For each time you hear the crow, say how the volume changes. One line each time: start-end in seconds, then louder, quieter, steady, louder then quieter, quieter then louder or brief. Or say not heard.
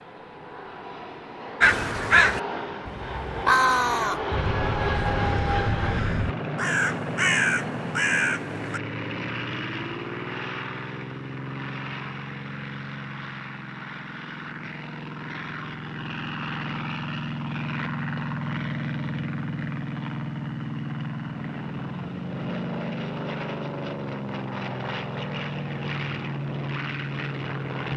1.6-8.8 quieter then louder.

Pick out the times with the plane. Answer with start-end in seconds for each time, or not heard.
0.0-27.9.